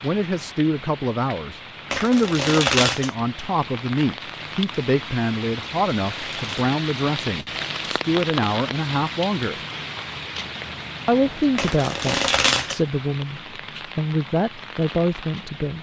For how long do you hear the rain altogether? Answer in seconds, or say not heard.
16 s.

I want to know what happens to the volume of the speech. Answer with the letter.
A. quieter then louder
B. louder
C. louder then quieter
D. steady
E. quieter
D.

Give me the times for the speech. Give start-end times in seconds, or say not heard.
0.0-9.6, 11.1-15.7.